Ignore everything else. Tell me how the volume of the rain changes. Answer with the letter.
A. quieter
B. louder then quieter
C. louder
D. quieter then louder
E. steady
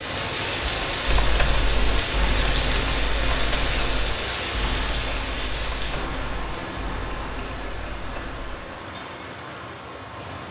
A.